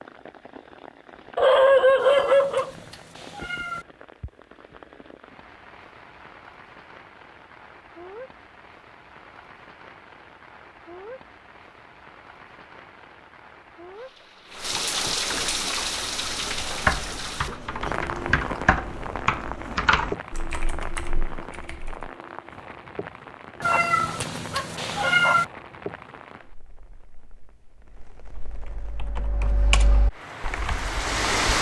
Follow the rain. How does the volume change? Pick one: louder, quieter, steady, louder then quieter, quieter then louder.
louder then quieter.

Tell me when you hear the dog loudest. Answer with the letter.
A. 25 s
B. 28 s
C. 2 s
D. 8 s
C.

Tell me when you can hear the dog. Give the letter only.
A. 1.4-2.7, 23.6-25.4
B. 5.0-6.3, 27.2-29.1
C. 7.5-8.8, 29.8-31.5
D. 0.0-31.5
A.